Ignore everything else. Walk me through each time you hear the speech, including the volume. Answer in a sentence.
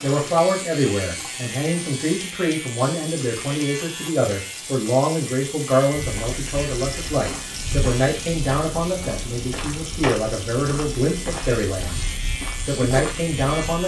The speech can be heard from 0.0 to 12.1 s, at a steady volume; and briefly from 12.7 to 13.8 s.